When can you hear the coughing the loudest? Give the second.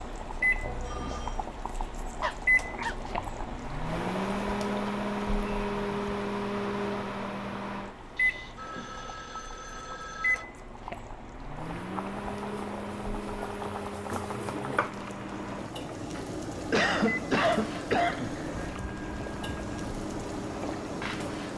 17 s.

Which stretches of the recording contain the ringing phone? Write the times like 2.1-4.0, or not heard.
0.6-1.4, 8.2-10.4, 18.6-19.9.